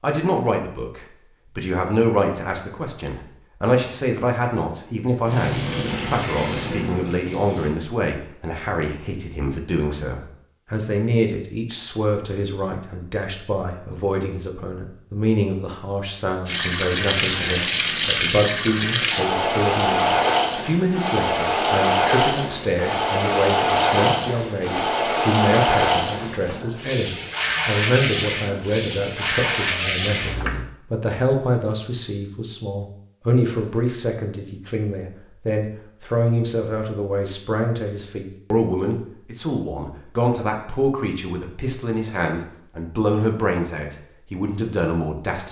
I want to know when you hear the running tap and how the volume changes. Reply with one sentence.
You can hear the running tap briefly from 5.2 to 7.8 s; and from 16.4 to 30.6 s, at a steady volume.